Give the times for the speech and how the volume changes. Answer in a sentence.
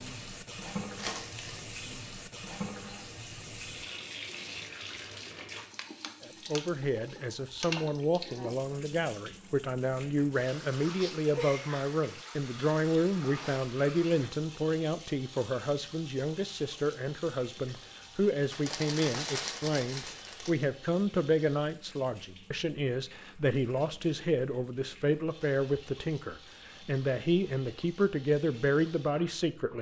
You can hear the speech from 6.2 to 29.7 s, at a steady volume.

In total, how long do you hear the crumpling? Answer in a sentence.
The crumpling can be heard for 3 seconds in total.